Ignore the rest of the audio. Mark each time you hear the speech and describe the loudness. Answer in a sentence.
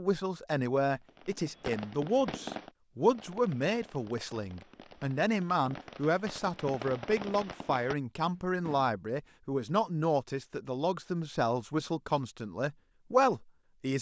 You can hear the speech from 0.0 to 13.9 s, at a steady volume.